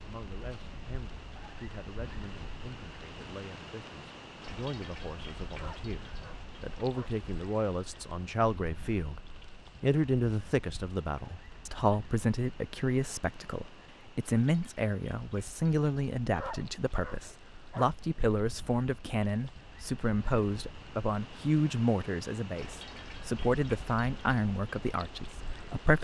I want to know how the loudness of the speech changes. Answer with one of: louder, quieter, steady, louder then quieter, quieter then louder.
louder.